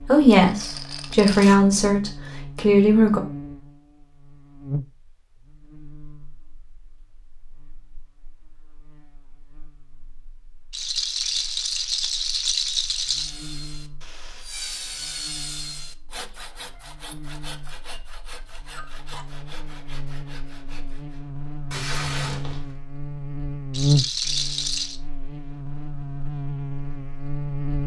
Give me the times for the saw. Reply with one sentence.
You can hear the saw from 13.0 to 21.2 s.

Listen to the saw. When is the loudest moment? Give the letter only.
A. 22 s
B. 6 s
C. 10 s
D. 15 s
D.